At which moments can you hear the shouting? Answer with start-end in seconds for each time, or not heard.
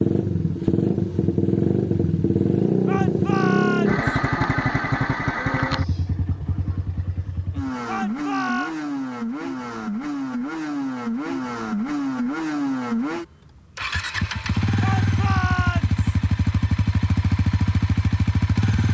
2.9-4.0, 7.8-8.8, 14.8-16.0.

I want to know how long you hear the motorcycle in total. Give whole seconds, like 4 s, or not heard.
19 s.